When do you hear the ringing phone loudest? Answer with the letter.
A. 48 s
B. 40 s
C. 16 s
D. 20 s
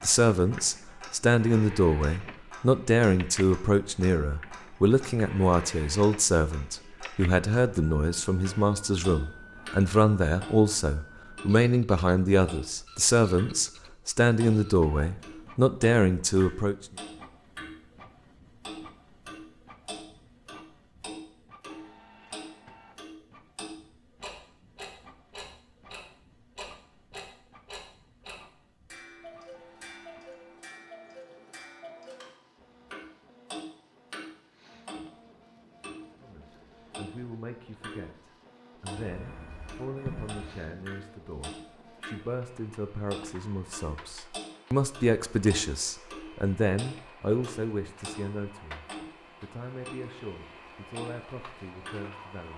B.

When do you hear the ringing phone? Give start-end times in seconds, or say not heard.
39.0-40.6.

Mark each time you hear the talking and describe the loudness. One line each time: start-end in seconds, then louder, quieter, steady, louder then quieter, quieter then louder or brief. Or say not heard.
0.0-16.8 steady
36.2-52.5 louder then quieter.